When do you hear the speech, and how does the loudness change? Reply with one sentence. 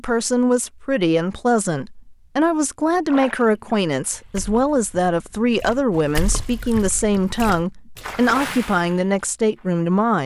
You can hear the speech from 0.0 to 10.2 s, at a steady volume.